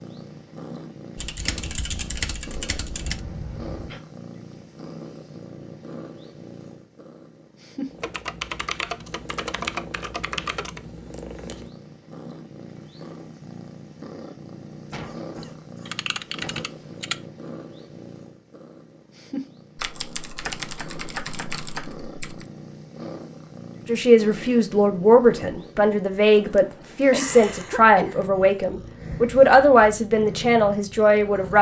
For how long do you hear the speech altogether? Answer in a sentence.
The speech can be heard for 8 seconds in total.